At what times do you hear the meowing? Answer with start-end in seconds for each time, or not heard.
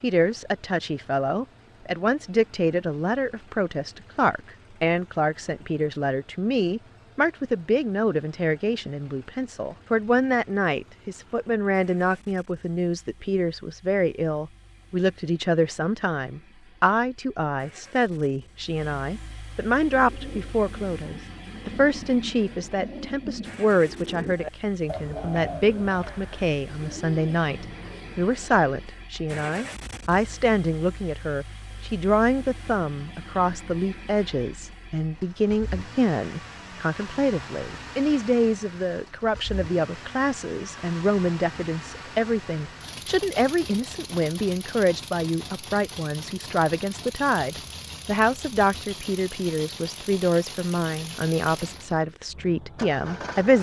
not heard.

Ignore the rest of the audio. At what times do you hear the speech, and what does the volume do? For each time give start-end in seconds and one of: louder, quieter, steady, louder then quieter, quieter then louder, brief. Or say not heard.
0.0-53.5 steady.